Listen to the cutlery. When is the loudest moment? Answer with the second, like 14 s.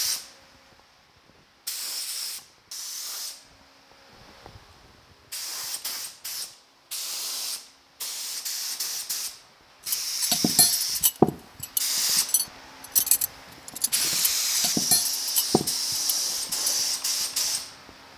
11 s.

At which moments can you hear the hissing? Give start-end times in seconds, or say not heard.
0.0-18.1.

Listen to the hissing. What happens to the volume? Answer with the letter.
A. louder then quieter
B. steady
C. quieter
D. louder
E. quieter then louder
D.